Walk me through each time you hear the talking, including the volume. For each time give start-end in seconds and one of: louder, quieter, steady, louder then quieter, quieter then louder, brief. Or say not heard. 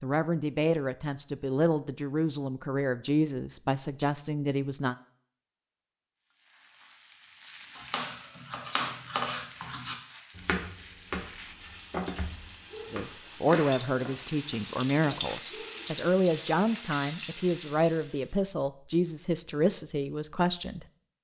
0.0-5.0 steady
12.9-20.9 steady.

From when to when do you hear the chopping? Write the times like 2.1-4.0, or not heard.
7.8-15.2.